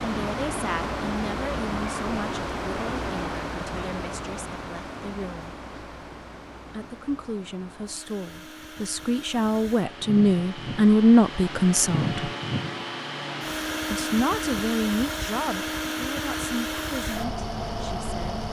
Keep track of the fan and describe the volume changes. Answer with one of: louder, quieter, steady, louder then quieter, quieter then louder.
quieter then louder.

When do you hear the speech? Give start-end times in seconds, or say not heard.
0.0-5.5, 6.7-12.3, 13.9-18.4.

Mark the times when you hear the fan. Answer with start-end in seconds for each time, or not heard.
0.0-18.4.